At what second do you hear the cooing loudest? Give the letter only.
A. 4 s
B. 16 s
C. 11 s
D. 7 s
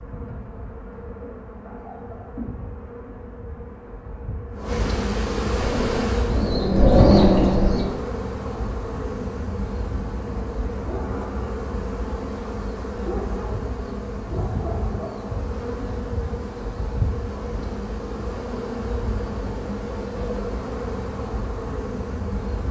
D.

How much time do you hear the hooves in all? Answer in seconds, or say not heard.
not heard.